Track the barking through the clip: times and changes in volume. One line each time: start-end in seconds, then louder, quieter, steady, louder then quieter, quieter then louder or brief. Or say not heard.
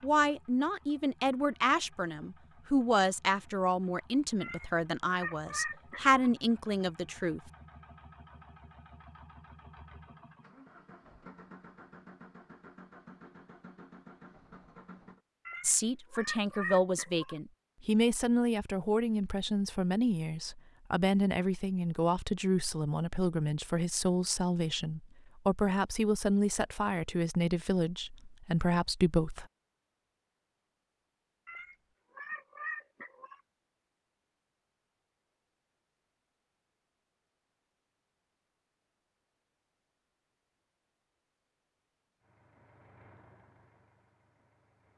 not heard.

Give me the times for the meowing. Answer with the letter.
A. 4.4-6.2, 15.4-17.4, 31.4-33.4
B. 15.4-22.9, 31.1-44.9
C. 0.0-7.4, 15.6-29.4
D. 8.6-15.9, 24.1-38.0
A.